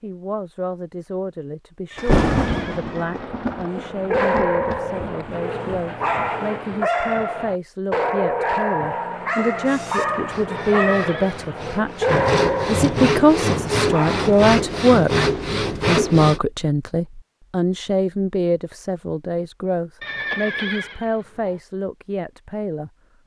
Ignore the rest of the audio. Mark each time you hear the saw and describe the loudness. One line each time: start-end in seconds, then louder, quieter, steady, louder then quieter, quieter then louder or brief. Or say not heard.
9.7-16.4 louder.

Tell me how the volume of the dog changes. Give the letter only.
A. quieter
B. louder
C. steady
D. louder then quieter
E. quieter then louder
C.